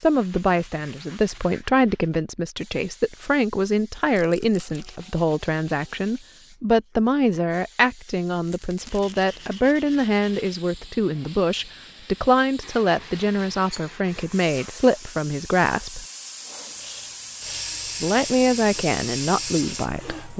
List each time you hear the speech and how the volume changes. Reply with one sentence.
You can hear the speech from 0.0 to 16.1 s, at a steady volume; and briefly from 18.0 to 20.3 s.